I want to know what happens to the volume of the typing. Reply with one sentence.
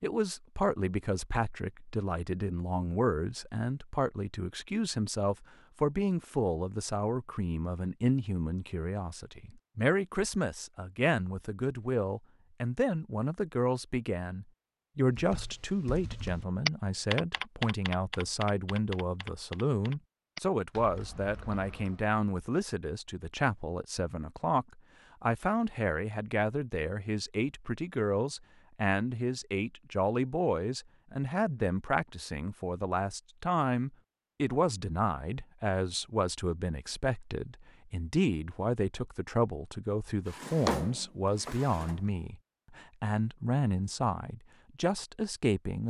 The volume of the typing goes down.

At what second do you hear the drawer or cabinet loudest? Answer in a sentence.
The loudest moment of the drawer or cabinet is at 41 seconds.